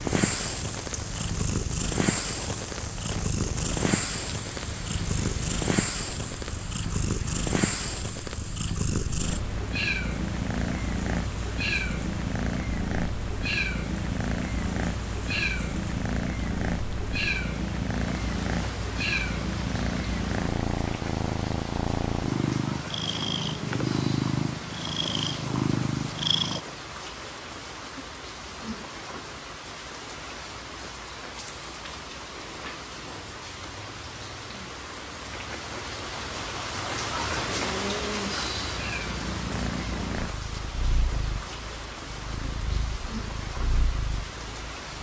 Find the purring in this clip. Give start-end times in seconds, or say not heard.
0.0-26.6, 38.4-44.9.